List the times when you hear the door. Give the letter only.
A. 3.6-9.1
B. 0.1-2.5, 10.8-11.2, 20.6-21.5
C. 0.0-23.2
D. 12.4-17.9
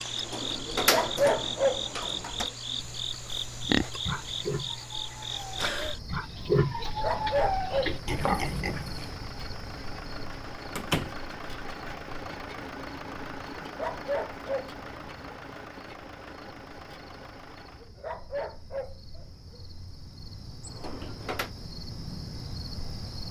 B.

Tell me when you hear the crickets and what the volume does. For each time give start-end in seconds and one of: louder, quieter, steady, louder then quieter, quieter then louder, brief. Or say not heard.
0.0-23.2 quieter then louder.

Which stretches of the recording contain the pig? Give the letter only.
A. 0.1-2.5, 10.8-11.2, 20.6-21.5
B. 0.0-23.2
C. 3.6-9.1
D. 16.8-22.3
C.